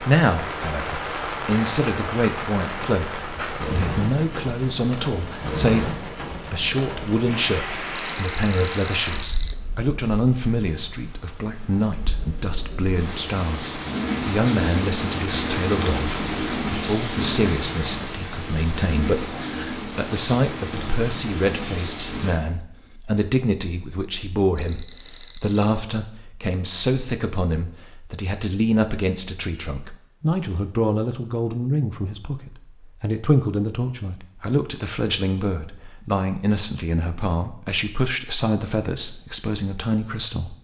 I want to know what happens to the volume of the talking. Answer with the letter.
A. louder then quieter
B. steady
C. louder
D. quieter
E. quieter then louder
B.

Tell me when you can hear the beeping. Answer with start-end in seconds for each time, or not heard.
8.2-9.6, 24.6-25.8.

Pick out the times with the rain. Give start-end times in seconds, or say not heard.
0.0-22.4.